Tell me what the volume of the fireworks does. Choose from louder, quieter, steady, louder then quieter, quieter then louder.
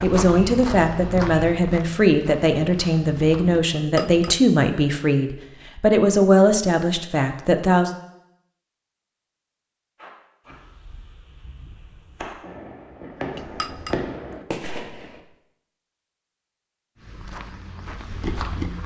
louder.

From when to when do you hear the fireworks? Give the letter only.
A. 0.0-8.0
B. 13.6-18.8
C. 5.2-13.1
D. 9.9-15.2
D.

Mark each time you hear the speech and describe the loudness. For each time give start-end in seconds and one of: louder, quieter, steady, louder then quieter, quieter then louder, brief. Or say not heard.
0.0-8.0 steady.